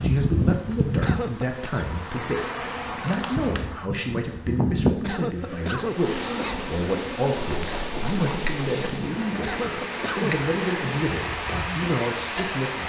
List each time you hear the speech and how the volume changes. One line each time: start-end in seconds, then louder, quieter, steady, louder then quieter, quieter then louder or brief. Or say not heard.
0.0-12.8 steady.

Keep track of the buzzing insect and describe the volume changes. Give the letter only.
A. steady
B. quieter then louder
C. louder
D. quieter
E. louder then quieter
D.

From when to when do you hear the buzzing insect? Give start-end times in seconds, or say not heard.
0.0-12.7.